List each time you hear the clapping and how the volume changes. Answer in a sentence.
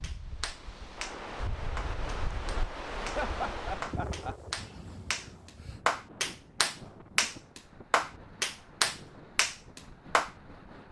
The clapping can be heard from 0.0 to 10.3 s, getting louder.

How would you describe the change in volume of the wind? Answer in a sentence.
The loudness of the wind goes down.